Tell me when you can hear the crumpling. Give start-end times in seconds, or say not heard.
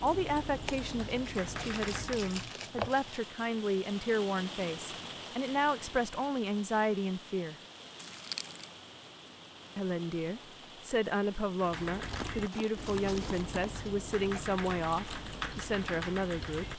0.7-3.3, 8.0-8.7, 12.0-13.6.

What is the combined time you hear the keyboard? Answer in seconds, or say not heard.
8 s.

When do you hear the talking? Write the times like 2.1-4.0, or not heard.
0.0-7.5, 9.8-16.7.